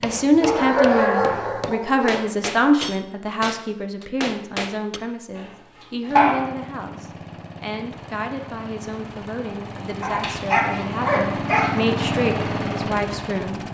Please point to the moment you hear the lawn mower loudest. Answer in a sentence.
The loudest moment of the lawn mower is at 12 seconds.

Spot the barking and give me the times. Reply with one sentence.
The barking can be heard from 0.4 to 2.2 s, from 5.3 to 6.5 s and from 10.0 to 11.8 s.